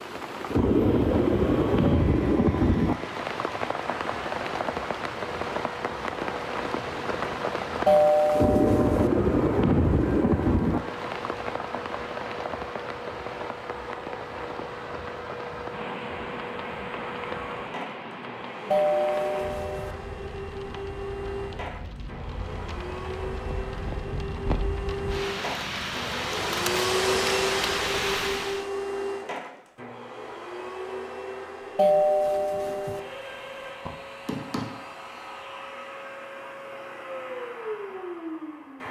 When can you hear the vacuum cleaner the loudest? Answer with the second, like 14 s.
27 s.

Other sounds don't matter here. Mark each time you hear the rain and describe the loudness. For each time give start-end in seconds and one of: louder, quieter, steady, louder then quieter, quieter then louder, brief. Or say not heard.
0.0-28.6 quieter then louder.